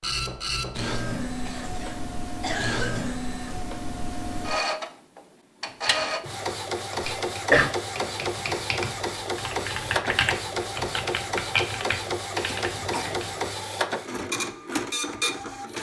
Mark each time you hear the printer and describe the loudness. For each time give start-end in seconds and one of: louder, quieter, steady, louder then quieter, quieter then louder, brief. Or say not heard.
0.0-15.7 steady.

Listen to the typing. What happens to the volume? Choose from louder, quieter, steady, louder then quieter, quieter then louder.
louder.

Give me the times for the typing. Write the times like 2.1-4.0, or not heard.
5.7-13.3.